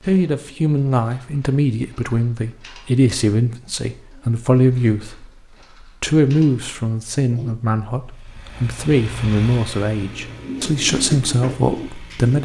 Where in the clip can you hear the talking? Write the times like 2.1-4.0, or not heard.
0.0-12.4.